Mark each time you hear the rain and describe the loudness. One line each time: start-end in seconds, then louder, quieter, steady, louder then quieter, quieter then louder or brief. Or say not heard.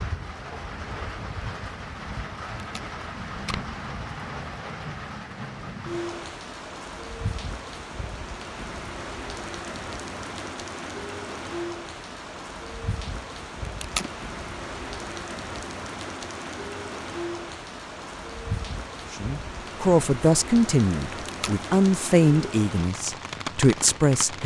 0.0-24.4 steady.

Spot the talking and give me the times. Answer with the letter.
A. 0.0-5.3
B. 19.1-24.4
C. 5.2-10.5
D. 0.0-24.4
B.